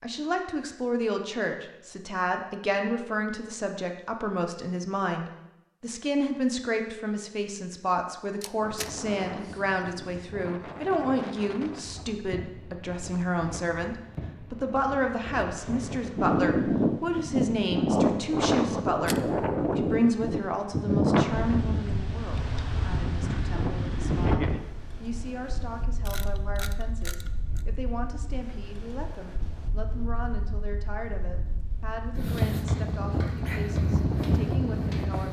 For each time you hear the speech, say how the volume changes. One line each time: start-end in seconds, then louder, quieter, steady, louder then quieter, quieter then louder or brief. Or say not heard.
0.0-35.2 quieter.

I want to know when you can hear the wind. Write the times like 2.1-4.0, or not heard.
8.6-35.2.